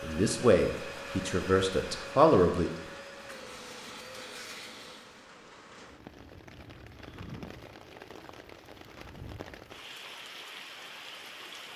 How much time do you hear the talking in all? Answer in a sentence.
The talking can be heard for 3 seconds in total.